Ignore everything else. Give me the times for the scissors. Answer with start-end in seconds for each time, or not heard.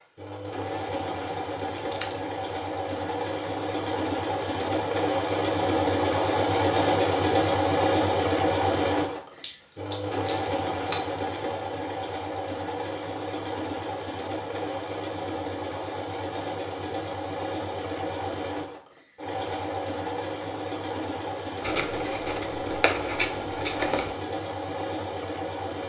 1.8-2.2, 9.4-11.1, 21.6-24.1.